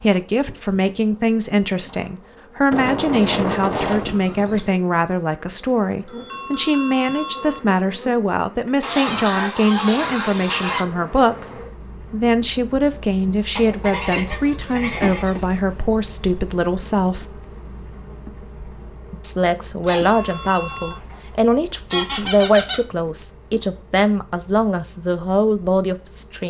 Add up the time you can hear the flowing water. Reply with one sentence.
The flowing water can't be heard in this clip.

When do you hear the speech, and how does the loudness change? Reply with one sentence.
You can hear the speech from 0.0 to 17.2 s, at a steady volume; and from 19.2 to 26.4 s, at a steady volume.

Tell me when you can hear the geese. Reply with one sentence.
The geese can be heard from 2.7 to 4.7 s, from 8.8 to 10.8 s, from 13.6 to 15.4 s and from 19.9 to 22.8 s.